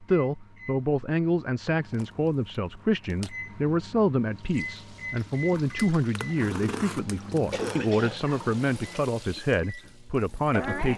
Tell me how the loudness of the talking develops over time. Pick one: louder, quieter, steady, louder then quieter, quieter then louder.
steady.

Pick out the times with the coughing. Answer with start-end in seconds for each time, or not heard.
7.5-8.2.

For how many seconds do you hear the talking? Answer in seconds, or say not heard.
11 s.